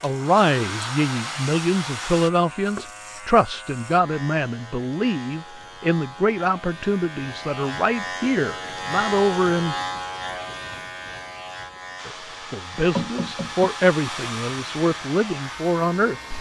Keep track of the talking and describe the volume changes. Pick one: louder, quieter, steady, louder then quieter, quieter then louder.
steady.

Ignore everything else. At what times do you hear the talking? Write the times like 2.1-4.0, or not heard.
0.0-9.8, 12.1-16.3.